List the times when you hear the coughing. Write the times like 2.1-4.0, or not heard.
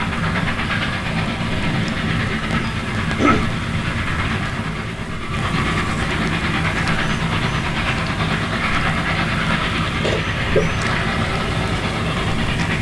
3.0-3.5, 10.0-10.7.